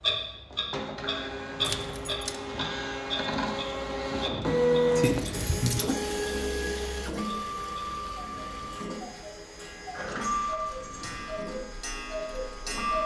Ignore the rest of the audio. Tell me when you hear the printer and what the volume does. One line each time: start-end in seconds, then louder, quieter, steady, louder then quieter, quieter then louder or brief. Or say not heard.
0.0-13.0 louder then quieter.